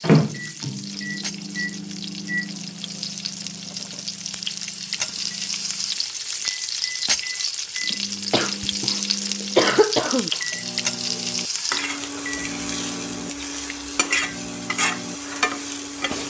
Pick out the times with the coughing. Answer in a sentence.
You can hear the coughing from 8.3 to 10.3 s.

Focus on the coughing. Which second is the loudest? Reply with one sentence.
The volume of the coughing peaks at 10 seconds.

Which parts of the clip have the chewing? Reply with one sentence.
You can't hear the chewing here.